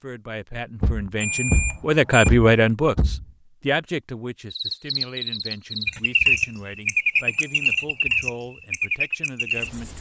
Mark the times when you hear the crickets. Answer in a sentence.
You can hear the crickets from 4.5 to 9.9 s.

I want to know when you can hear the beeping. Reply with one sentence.
You can hear the beeping from 1.2 to 2.3 s and from 7.2 to 8.2 s.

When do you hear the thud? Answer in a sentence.
You can hear the thud from 0.8 to 3.2 s.